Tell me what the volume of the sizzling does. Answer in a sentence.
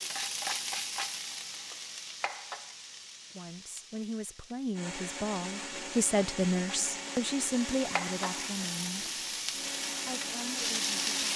The loudness of the sizzling goes down, then up.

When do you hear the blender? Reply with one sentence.
You can hear the blender from 4.7 to 11.3 s.